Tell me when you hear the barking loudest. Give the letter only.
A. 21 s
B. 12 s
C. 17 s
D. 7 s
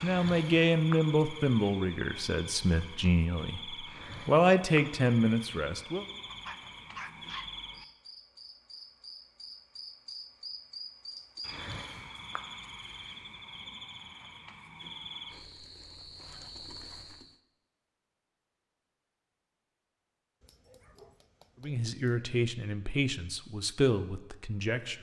D.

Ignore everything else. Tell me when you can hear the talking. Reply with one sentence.
The talking can be heard from 0.0 to 6.0 s and from 21.6 to 24.9 s.